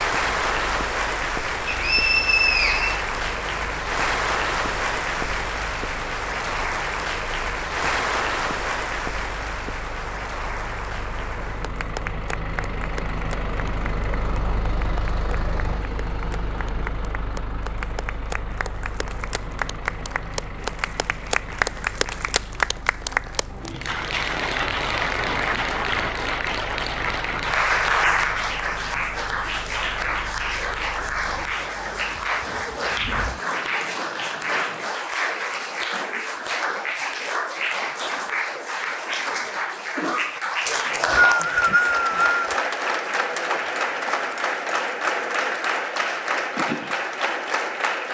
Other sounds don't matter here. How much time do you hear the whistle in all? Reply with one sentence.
The whistle can be heard for 3 seconds in total.